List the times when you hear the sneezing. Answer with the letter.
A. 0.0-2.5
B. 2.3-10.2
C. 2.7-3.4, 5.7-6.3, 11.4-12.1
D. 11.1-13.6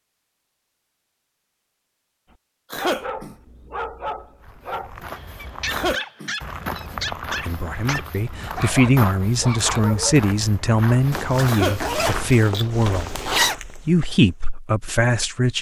C.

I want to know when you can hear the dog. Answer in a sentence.
You can hear the dog from 2.3 to 10.2 s.